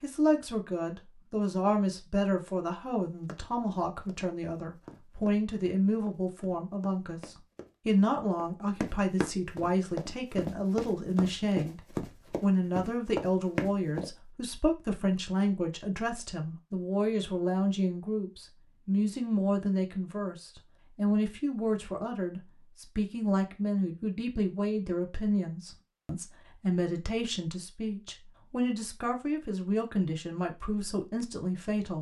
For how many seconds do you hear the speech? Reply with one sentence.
The speech can be heard for 31 seconds in total.